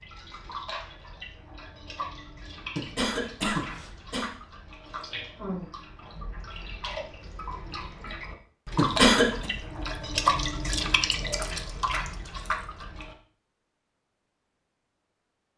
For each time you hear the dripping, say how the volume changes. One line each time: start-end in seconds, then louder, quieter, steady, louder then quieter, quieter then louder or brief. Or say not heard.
0.0-13.2 louder.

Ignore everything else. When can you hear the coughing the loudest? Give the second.
9 s.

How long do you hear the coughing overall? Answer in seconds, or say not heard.
2 s.